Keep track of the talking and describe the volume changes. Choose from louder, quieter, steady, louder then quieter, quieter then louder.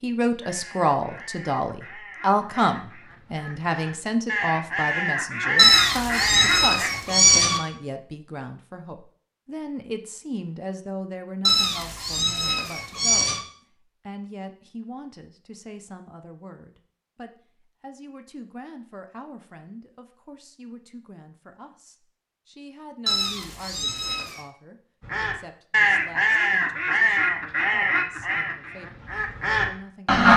quieter.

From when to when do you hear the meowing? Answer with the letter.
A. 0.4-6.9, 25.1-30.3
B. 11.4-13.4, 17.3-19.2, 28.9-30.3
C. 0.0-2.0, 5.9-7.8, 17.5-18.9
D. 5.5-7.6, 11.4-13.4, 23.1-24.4
D.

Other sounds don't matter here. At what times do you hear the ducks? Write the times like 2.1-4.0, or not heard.
0.4-6.9, 25.1-30.3.